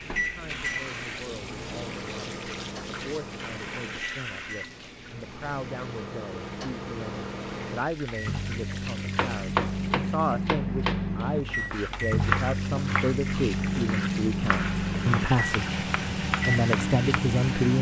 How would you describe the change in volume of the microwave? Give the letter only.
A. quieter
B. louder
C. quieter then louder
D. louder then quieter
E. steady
B.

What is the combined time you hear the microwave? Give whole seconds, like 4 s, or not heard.
18 s.